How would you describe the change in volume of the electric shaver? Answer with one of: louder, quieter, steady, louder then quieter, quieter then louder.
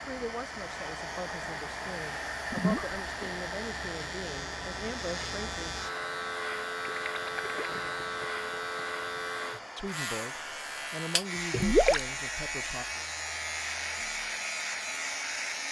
louder.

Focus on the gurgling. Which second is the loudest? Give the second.
12 s.